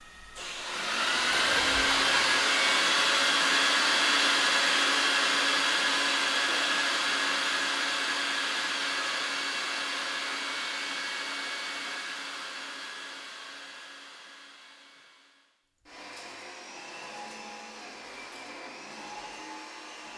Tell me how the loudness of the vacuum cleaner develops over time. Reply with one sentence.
The volume of the vacuum cleaner goes down.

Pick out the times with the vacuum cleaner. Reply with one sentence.
You can hear the vacuum cleaner from 0.0 to 20.1 s.